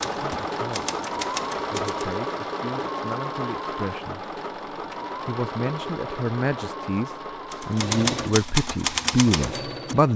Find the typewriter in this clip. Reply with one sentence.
You can hear the typewriter from 0.0 to 2.1 s and from 7.5 to 9.9 s.